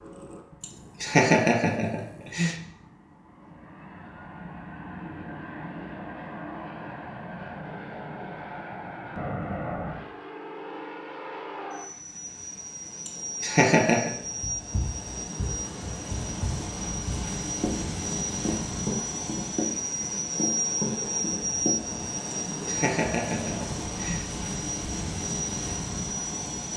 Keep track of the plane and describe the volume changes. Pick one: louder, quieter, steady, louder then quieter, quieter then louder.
louder.